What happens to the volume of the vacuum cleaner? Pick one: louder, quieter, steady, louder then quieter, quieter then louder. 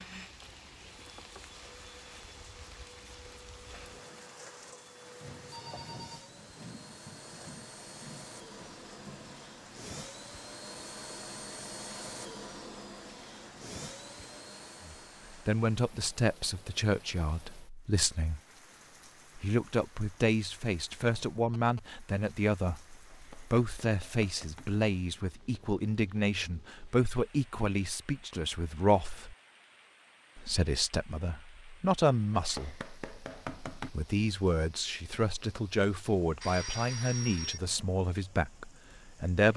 louder.